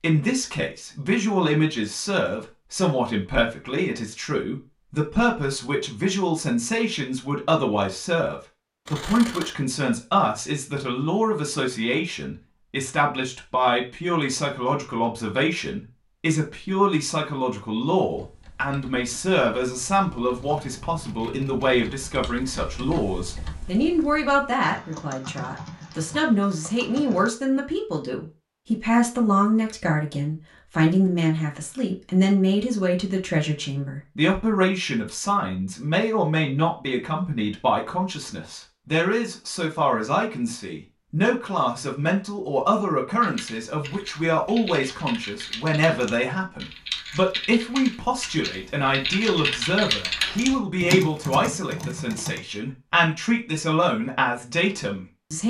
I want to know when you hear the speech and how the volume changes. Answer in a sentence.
You can hear the speech from 0.0 to 55.4 s, at a steady volume.